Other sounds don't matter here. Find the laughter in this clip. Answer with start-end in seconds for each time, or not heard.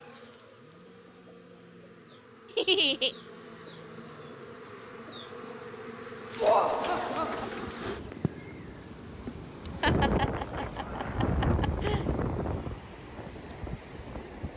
2.5-3.1, 6.3-7.5, 9.8-12.1.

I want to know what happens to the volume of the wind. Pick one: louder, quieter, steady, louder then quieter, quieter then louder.
louder then quieter.